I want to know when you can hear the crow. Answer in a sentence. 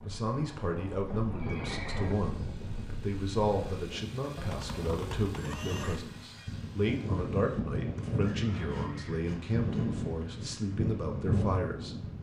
You can't hear the crow here.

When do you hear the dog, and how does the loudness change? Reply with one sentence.
The dog can't be heard in this clip.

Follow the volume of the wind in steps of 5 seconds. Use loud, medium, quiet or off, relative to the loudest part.
medium, loud, loud.